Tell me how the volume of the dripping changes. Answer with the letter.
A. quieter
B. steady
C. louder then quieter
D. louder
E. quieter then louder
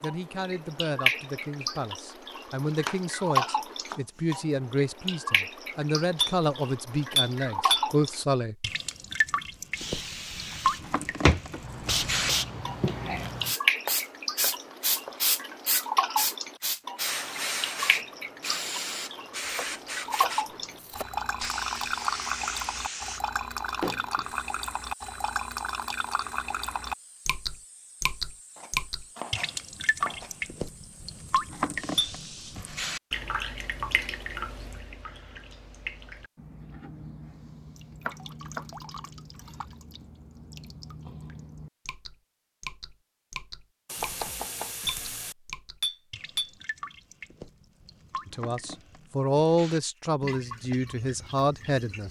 A.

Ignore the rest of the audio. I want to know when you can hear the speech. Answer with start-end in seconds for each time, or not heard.
0.0-8.6, 48.2-52.0.